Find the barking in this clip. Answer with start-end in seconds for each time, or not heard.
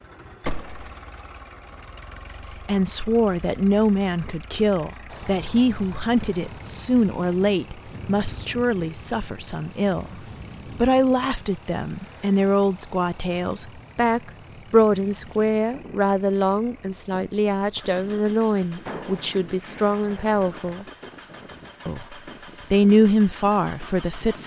not heard.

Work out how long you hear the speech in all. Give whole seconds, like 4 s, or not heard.
21 s.